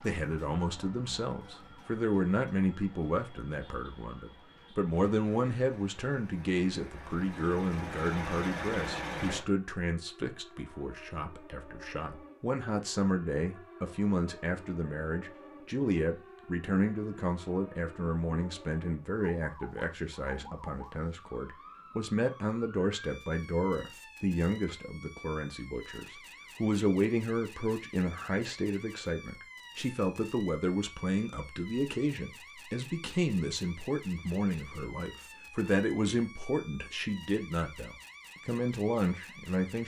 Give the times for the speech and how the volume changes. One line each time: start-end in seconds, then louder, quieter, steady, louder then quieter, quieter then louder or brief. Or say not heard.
0.0-39.8 steady.